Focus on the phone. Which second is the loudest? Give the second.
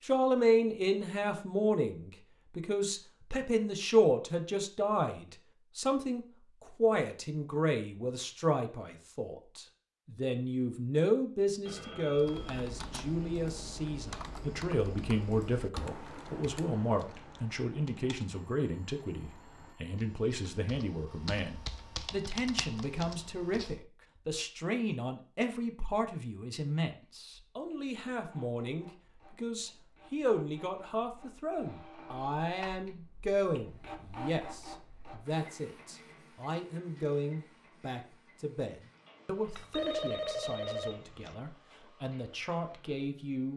40 s.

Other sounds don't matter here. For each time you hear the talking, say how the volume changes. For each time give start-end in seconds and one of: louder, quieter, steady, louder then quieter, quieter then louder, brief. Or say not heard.
0.0-43.5 quieter.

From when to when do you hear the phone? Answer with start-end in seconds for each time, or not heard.
11.7-12.6, 18.3-20.1, 39.5-41.4.